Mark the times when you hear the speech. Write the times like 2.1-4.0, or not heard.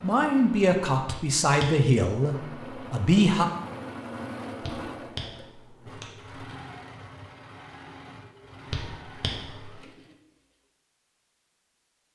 0.0-3.5.